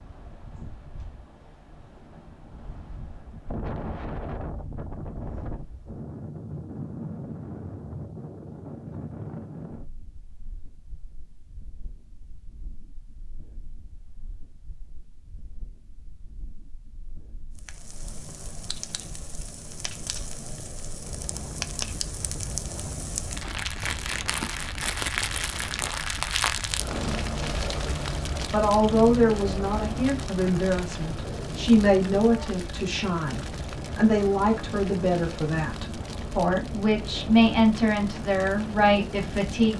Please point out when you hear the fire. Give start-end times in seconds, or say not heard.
17.6-39.7.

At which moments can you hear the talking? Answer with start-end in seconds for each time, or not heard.
28.5-39.7.